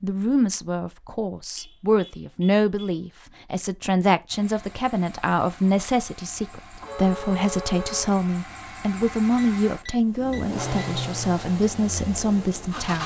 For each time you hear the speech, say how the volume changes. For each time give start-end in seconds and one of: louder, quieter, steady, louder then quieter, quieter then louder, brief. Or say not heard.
0.0-13.0 steady.